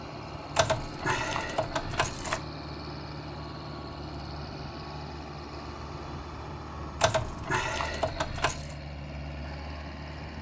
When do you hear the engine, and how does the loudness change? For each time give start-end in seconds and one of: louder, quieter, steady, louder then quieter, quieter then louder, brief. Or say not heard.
0.0-10.3 steady.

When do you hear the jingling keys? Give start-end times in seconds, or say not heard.
0.6-2.4, 7.0-8.8.